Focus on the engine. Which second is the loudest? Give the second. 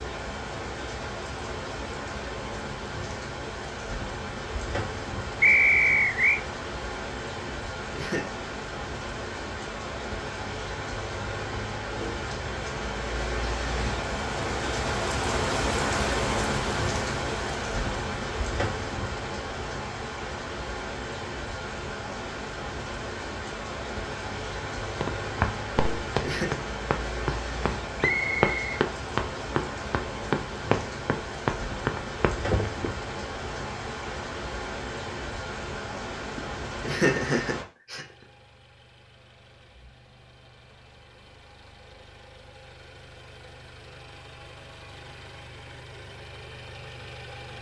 47 s.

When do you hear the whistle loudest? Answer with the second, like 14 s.
6 s.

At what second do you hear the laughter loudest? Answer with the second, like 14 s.
37 s.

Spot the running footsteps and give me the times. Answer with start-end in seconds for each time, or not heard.
25.0-33.0.